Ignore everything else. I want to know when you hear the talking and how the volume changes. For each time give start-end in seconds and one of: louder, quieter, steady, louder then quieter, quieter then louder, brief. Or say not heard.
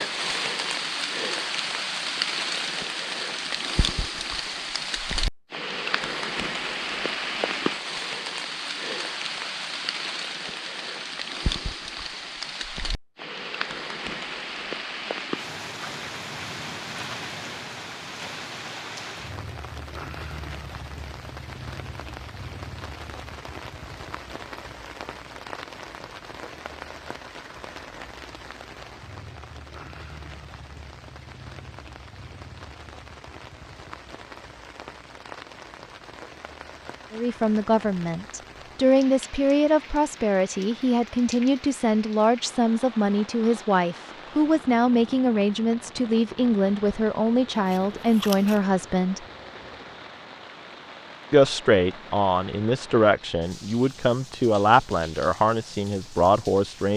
37.1-49.2 steady
51.3-56.9 steady.